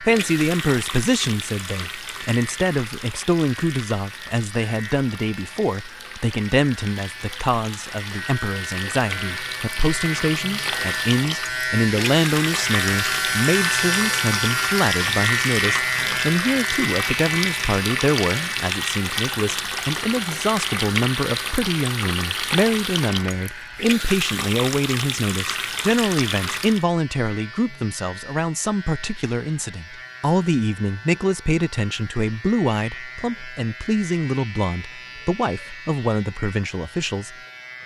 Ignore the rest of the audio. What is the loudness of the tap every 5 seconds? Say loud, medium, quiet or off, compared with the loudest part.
medium, medium, loud, loud, loud, loud, off, off.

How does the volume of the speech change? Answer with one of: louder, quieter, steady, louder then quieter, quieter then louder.
steady.